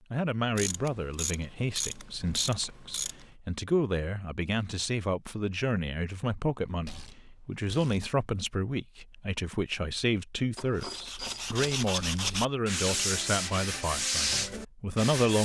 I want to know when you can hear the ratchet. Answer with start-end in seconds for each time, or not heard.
0.6-3.2, 6.8-8.1, 10.6-12.4.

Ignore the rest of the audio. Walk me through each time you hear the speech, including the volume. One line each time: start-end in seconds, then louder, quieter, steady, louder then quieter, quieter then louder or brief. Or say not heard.
0.1-15.3 steady.